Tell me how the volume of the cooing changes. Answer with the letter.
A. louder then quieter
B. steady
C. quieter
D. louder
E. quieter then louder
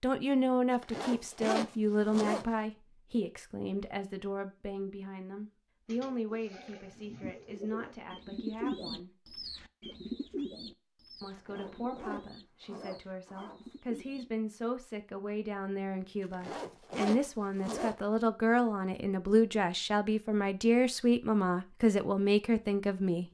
A.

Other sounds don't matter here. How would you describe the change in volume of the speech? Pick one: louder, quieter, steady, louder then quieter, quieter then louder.
quieter then louder.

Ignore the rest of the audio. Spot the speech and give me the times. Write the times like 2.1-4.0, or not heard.
0.0-9.1, 11.2-23.2.